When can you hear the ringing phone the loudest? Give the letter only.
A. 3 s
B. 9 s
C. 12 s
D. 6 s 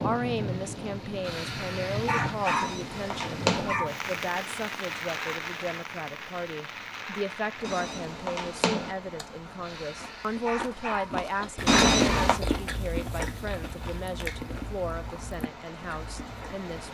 C.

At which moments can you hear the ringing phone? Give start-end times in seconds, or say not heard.
2.5-3.8, 7.7-8.9, 11.7-12.4.